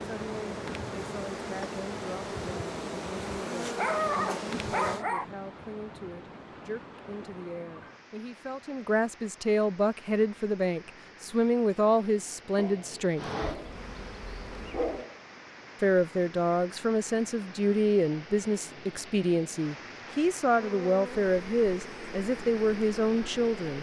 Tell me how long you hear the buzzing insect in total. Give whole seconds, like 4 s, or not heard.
10 s.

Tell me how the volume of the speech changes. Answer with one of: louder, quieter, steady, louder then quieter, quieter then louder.
louder.